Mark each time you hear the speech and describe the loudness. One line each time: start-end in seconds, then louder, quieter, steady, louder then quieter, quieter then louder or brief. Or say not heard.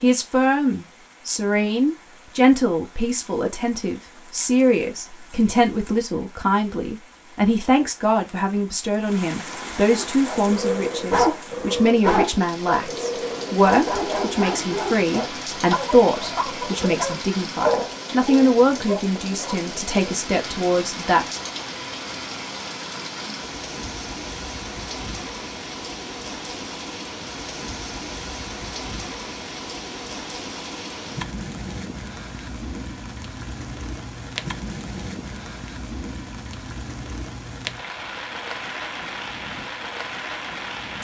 0.0-21.2 steady.